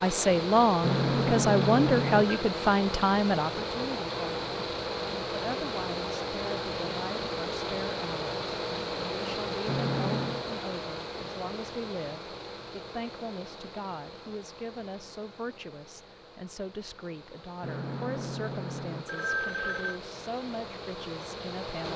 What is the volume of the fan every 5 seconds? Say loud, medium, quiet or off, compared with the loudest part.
loud, loud, medium, quiet, medium.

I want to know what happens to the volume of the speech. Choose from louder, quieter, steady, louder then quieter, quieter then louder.
quieter.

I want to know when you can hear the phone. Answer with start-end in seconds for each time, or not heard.
0.8-2.5, 9.7-10.4, 17.6-20.0.